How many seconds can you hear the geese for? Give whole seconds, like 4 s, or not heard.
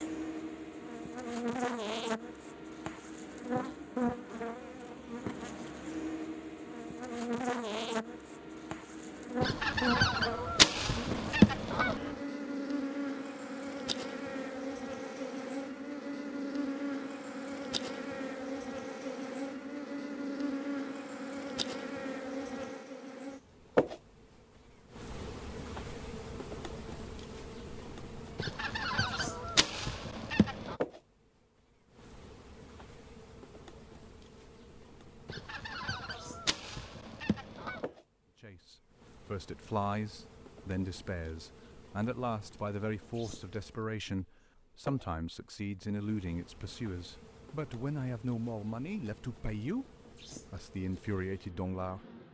8 s.